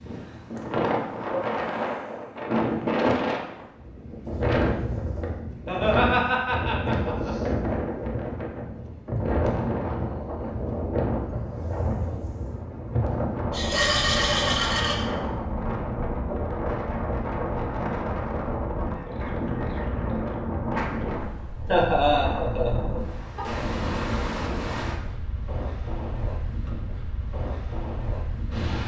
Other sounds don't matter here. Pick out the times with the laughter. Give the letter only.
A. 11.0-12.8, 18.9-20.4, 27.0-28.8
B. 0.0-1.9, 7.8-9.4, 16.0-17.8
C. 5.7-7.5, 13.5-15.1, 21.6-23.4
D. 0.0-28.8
C.